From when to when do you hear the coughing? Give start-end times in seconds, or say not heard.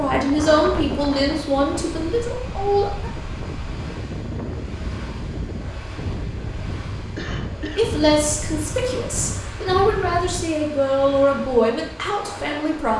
7.2-7.9.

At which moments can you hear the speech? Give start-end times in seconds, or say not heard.
0.0-3.1, 7.8-12.9.